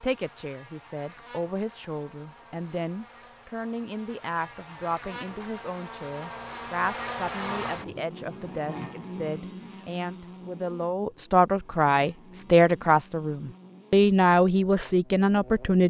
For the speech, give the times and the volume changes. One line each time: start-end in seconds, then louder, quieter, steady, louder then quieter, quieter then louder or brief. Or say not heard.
0.0-15.8 louder.